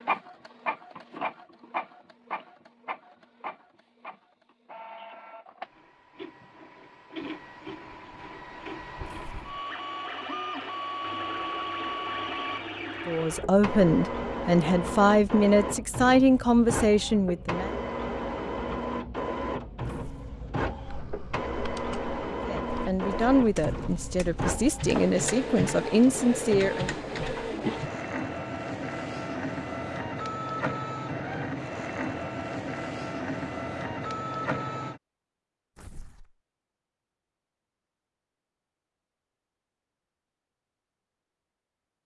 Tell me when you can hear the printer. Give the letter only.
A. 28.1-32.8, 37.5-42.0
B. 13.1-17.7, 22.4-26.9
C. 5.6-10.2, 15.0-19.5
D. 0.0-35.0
D.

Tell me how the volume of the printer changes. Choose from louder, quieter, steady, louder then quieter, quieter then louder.
louder.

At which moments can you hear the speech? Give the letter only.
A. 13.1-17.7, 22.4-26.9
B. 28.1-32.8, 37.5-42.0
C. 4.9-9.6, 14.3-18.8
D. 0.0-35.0
A.